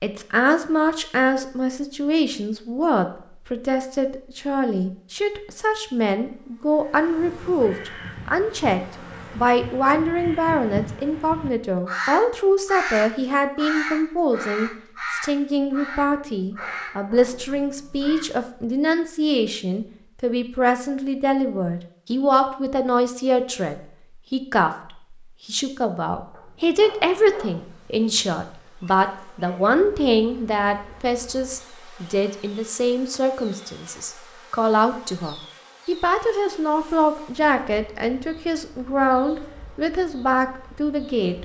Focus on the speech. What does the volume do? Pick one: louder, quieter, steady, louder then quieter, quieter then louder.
steady.